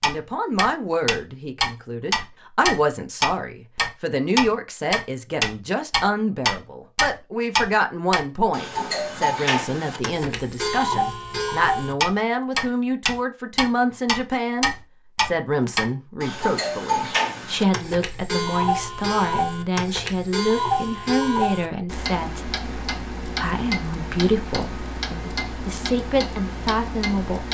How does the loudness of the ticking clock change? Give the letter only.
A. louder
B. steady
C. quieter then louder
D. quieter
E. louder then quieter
D.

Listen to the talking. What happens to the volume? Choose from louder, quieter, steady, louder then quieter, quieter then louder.
steady.